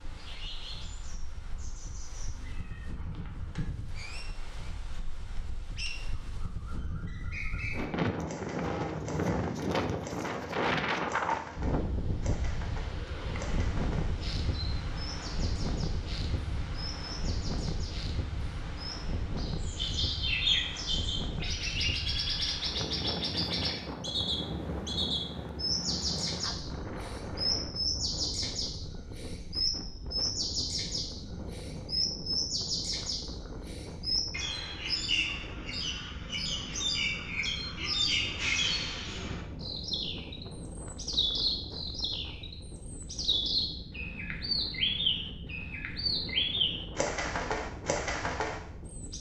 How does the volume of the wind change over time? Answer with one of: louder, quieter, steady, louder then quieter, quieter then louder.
quieter.